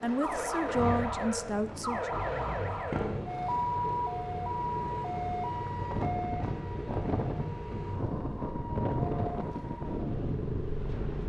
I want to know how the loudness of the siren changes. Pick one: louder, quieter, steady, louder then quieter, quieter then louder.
quieter.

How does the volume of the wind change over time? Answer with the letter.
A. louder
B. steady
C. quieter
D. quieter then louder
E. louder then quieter
A.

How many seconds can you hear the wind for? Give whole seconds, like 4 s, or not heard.
11 s.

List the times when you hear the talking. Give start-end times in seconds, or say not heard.
0.0-2.1.